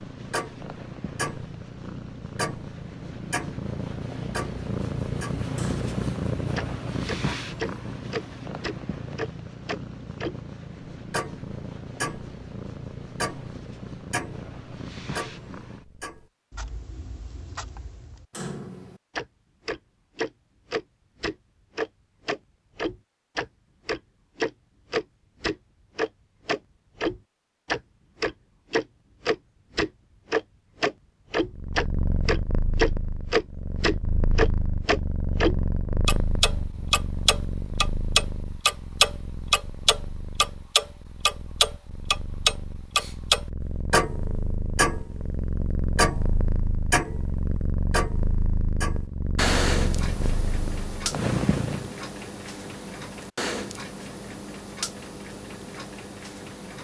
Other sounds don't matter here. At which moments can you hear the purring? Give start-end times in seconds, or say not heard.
0.0-16.3, 31.5-51.9.